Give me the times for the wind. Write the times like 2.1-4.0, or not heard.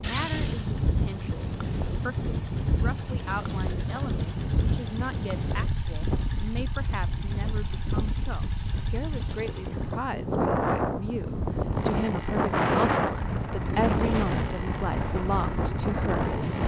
0.0-16.6.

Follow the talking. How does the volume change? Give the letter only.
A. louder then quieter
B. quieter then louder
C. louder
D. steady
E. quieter
C.